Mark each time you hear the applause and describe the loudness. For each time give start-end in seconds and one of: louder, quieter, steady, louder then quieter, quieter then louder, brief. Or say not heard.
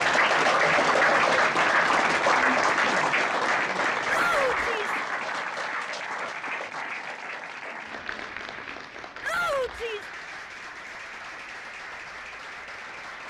0.0-13.2 quieter.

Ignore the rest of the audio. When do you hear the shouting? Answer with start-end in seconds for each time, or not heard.
4.0-5.0, 9.2-10.1.